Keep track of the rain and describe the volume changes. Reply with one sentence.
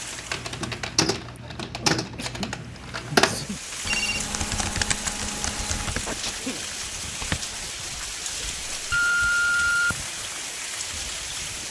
The loudness of the rain goes up.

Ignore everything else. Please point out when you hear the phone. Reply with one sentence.
You can hear the phone from 3.3 to 4.2 s and from 8.9 to 10.1 s.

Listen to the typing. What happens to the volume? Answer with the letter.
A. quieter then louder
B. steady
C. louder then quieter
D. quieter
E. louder
C.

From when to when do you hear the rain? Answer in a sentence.
The rain can be heard from 0.0 to 11.6 s.